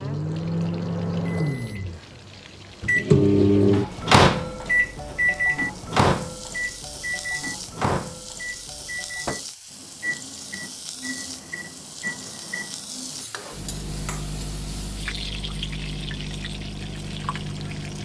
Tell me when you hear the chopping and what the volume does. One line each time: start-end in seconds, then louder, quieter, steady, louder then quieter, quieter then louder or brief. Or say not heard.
not heard.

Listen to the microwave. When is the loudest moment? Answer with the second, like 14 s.
4 s.